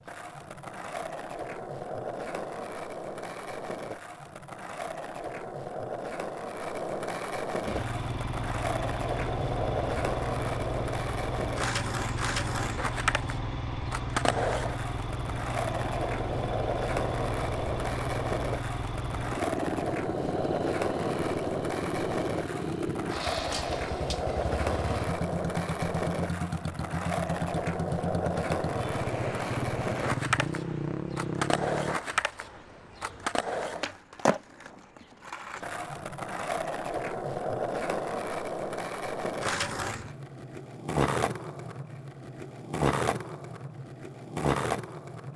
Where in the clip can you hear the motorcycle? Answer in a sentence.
The motorcycle can be heard from 7.6 to 32.0 s.